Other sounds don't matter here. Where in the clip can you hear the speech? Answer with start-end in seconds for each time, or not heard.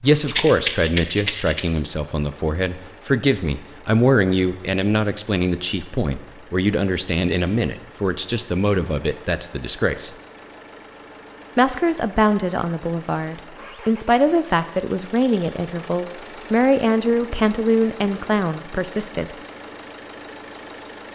0.0-10.1, 11.6-19.4.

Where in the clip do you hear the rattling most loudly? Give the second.
1 s.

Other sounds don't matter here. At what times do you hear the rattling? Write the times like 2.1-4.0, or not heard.
0.2-1.6, 14.7-15.6.